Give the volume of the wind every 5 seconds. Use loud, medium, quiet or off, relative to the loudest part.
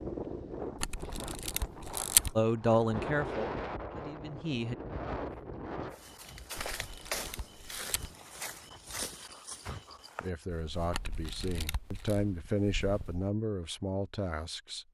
loud, medium, off.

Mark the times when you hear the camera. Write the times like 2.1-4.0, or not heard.
0.8-2.4, 6.8-8.1, 10.9-12.2.